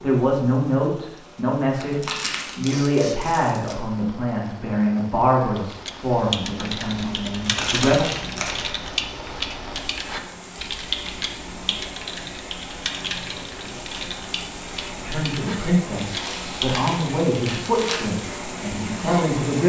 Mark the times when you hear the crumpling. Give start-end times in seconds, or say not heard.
1.8-3.8, 7.4-8.6, 16.1-18.1.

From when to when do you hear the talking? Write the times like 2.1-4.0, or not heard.
0.0-8.1, 14.9-19.6.